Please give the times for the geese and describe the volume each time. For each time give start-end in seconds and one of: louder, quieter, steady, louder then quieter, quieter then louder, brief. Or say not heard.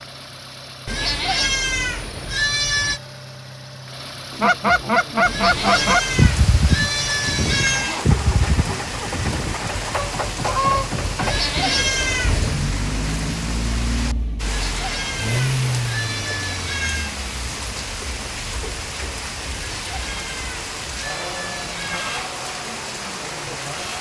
4.4-10.9 quieter.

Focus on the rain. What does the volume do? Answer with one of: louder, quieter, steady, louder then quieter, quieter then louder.
steady.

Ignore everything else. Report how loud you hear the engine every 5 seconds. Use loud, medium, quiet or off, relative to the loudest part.
medium, loud, loud, loud, medium.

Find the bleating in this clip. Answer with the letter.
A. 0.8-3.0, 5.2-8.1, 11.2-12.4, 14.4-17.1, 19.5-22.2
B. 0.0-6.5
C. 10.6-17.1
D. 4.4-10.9
A.